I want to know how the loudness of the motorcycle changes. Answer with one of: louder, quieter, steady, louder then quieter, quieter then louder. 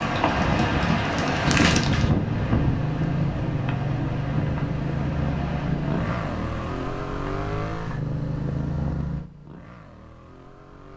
quieter.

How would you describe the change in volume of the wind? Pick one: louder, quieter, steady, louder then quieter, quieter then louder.
quieter.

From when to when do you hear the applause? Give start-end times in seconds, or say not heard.
0.0-2.1.